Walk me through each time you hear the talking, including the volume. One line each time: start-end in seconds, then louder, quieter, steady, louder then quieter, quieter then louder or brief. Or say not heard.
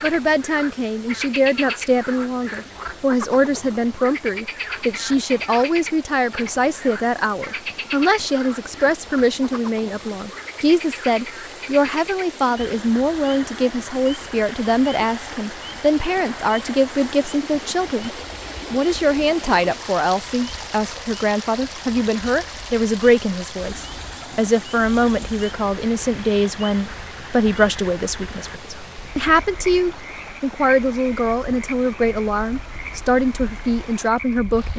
0.0-18.1 steady
18.7-34.7 steady.